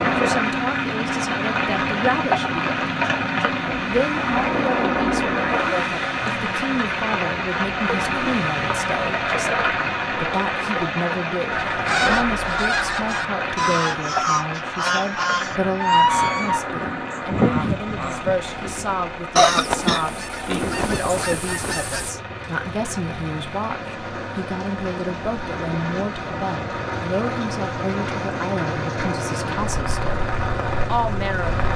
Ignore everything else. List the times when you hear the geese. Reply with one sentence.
You can hear the geese from 11.5 to 22.1 s.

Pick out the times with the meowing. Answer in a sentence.
The meowing can't be heard in this clip.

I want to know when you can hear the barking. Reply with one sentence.
You can't hear the barking here.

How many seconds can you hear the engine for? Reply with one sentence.
You can hear the engine for 32 seconds altogether.